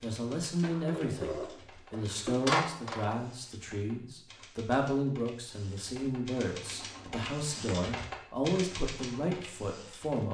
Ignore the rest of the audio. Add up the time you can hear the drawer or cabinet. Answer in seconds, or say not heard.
4 s.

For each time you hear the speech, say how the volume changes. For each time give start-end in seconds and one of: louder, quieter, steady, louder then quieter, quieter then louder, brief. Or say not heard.
0.0-10.2 steady.